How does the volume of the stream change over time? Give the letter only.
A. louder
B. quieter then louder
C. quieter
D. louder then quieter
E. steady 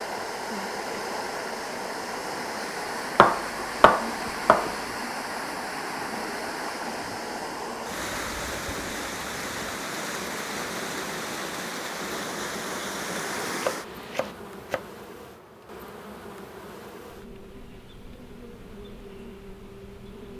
E.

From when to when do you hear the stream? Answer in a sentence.
You can hear the stream from 0.0 to 14.3 s.